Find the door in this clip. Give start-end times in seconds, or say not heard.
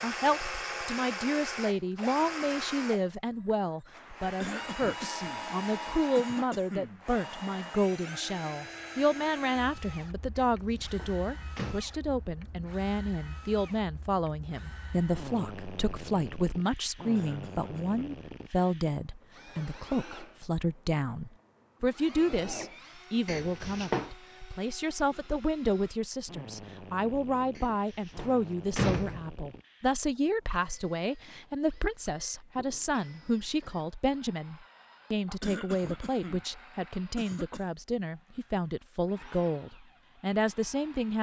10.3-11.8, 23.2-24.1, 27.6-29.2.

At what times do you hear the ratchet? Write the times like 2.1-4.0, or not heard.
not heard.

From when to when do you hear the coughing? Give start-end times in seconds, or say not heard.
4.4-5.5, 6.2-7.0, 17.1-18.0, 35.4-36.5, 37.1-37.6.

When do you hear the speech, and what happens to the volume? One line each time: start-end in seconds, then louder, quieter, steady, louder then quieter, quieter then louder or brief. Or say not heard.
0.0-41.1 steady.